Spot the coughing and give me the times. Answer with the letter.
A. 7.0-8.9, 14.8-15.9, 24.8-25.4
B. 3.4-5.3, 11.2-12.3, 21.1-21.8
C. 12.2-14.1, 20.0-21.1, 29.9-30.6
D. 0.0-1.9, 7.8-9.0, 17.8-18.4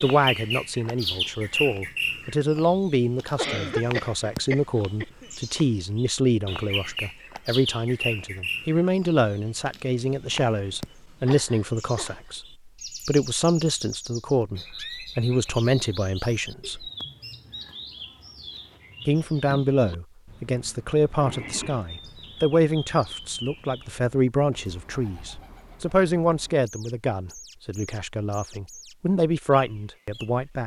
B.